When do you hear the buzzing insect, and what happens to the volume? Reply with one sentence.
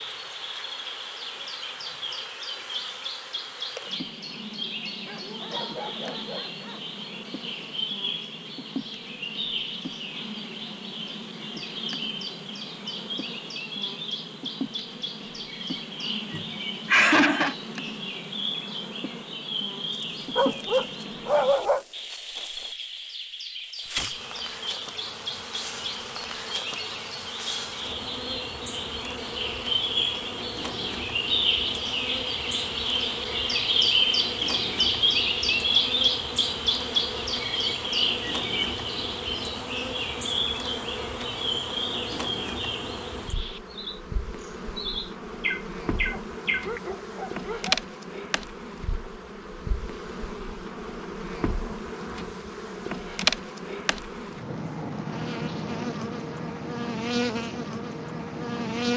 You can hear the buzzing insect from 0.0 to 58.9 s, getting louder.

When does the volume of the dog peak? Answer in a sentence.
The loudest moment of the dog is at 21 seconds.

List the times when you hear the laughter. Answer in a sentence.
You can hear the laughter from 16.3 to 17.6 s.